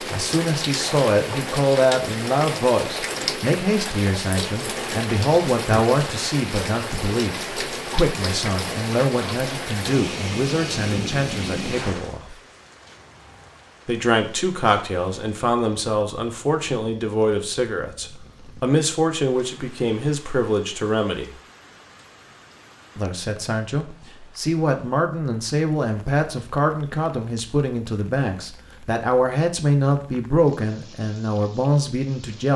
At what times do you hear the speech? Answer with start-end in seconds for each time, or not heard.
0.1-12.3, 13.8-21.3, 22.9-32.5.